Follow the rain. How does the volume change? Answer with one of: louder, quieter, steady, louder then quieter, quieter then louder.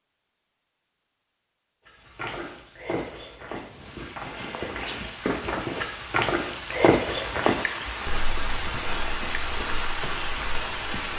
louder.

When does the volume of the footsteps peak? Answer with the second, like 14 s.
7 s.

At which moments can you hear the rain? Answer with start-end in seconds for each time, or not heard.
3.6-11.1.